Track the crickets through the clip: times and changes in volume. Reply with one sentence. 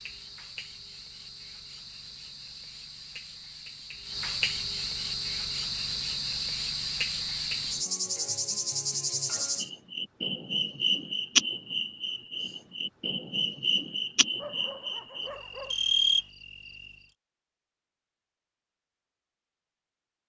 The crickets can be heard from 0.0 to 16.9 s, getting louder.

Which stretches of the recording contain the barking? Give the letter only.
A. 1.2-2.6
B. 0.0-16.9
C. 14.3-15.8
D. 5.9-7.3
C.